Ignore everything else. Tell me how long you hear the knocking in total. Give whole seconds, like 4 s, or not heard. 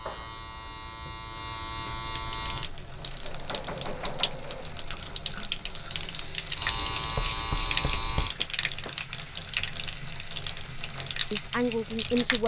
3 s.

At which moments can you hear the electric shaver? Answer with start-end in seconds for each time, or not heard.
0.0-2.7, 6.5-8.3.